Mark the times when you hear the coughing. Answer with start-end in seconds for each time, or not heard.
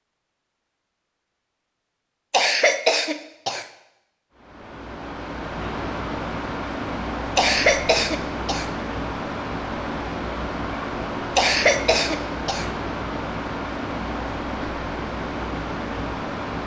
2.3-3.6, 7.3-8.7, 11.3-12.7.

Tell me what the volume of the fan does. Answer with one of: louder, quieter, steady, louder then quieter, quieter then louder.
steady.